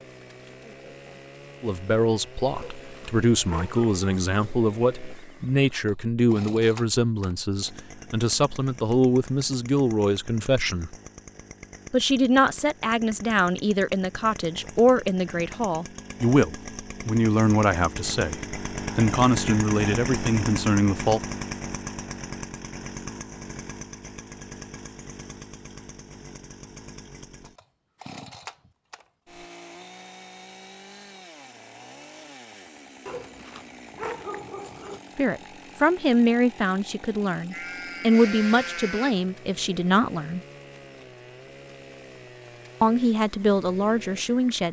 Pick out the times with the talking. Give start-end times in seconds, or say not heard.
1.6-10.9, 11.9-21.2, 35.1-40.4, 42.8-44.6.